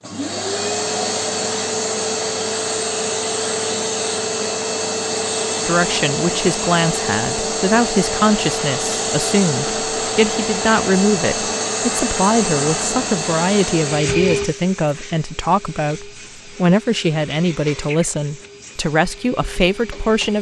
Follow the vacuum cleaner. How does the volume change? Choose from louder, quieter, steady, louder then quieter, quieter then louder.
quieter.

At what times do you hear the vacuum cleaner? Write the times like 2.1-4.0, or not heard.
0.0-20.3.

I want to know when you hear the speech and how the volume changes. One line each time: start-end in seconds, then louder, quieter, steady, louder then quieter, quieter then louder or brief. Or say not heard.
5.7-20.3 steady.